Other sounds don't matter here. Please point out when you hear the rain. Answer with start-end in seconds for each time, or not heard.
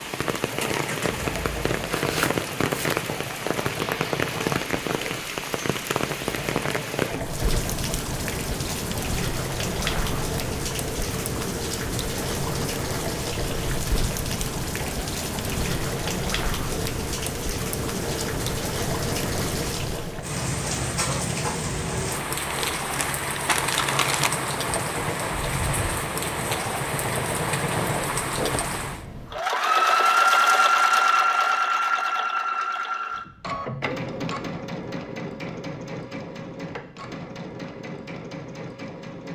0.0-29.1.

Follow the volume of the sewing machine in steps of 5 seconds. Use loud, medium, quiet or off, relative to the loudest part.
quiet, quiet, quiet, quiet, quiet, medium, loud, quiet.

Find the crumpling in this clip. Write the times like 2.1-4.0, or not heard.
1.9-3.0, 22.5-24.3.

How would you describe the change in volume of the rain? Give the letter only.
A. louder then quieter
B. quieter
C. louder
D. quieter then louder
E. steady
E.